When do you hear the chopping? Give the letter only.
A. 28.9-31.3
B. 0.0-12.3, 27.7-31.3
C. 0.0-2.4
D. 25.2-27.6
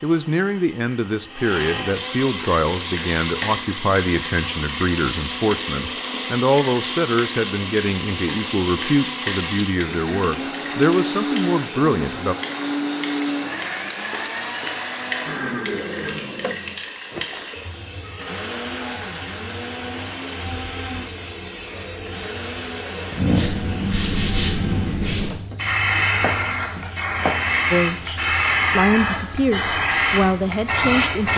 D.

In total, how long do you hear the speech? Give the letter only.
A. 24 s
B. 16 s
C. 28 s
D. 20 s
B.